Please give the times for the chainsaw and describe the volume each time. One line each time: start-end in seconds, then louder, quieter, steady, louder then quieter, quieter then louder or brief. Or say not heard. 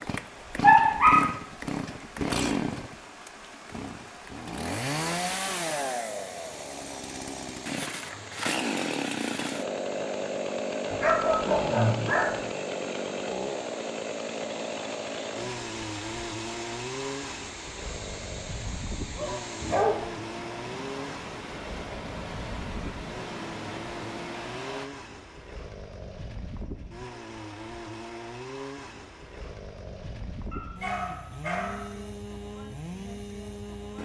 0.0-33.9 quieter.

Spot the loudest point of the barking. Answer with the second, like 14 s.
1 s.